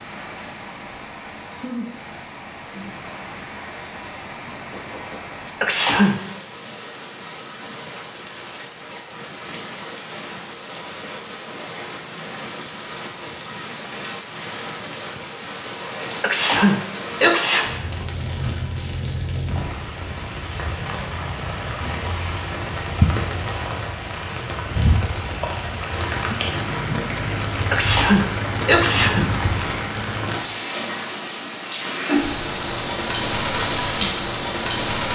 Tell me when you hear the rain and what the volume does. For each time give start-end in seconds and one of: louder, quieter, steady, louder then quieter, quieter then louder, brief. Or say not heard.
0.0-35.1 louder.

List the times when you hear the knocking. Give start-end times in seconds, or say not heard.
4.5-5.3.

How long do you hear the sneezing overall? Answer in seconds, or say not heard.
4 s.